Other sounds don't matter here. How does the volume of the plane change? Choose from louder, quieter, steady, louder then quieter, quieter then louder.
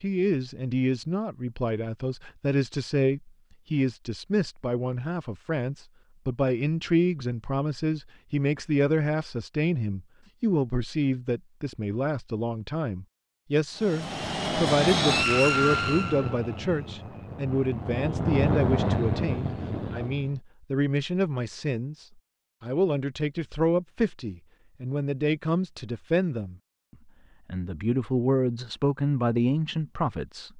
quieter then louder.